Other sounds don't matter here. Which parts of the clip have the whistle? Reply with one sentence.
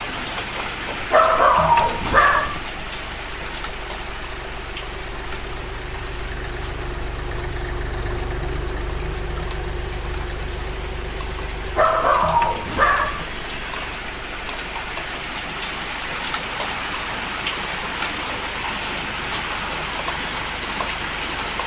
The whistle can't be heard in this clip.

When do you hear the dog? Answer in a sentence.
You can hear the dog from 1.0 to 2.6 s and from 11.7 to 13.2 s.